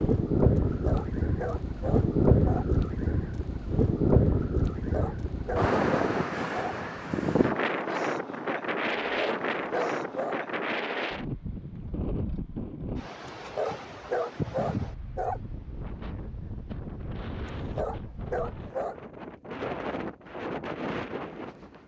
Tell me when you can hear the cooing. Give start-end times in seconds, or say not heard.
not heard.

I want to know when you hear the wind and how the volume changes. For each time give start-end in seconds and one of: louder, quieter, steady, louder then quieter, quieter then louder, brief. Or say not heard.
0.0-21.8 quieter.